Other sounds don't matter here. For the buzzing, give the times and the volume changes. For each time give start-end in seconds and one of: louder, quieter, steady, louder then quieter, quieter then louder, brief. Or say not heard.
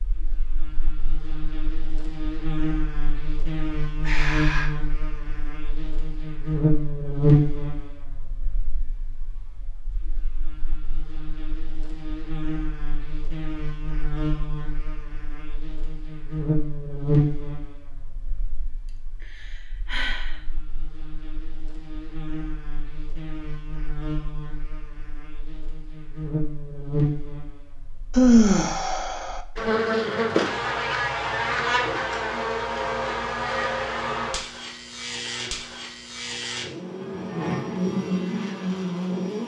0.0-39.4 quieter then louder.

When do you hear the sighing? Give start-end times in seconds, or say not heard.
4.0-4.7, 18.9-20.4, 28.1-29.4.